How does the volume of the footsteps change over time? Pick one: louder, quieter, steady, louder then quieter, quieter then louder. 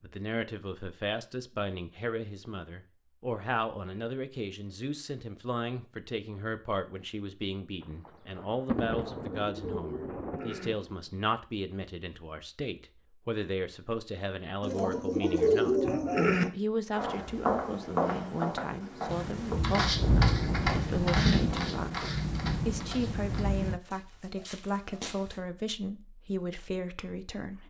quieter.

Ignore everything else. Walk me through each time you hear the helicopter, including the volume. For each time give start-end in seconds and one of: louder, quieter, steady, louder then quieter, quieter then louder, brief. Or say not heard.
not heard.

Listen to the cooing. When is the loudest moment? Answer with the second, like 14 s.
16 s.